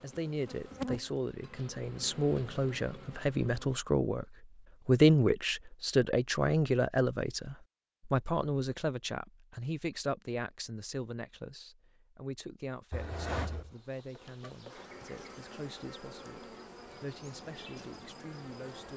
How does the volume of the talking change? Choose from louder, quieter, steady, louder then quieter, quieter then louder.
louder then quieter.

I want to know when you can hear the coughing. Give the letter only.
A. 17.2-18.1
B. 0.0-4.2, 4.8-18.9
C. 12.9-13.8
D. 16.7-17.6
C.